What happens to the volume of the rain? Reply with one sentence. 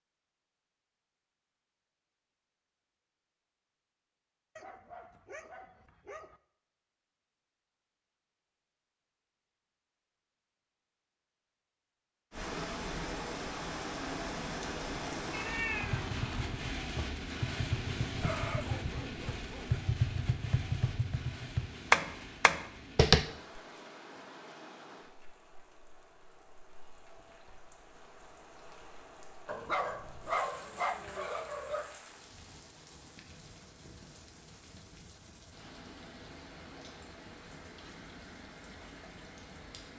The loudness of the rain goes down.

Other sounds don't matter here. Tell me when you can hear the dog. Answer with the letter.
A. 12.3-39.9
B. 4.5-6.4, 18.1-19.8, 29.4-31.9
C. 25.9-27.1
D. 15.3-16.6
B.